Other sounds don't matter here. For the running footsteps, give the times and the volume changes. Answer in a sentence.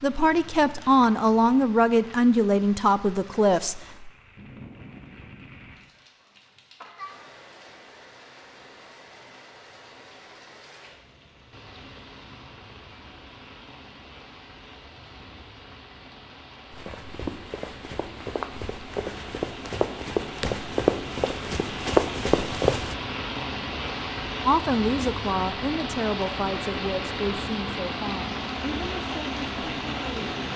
The running footsteps can be heard from 16.7 to 22.9 s, getting louder.